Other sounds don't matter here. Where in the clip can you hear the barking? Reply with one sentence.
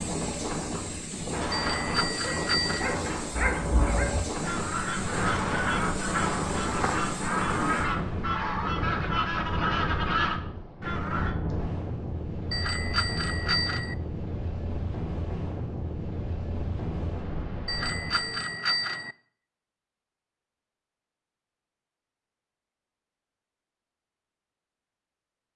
You can hear the barking from 2.2 to 4.1 s.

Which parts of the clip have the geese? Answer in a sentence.
You can hear the geese from 3.3 to 11.3 s.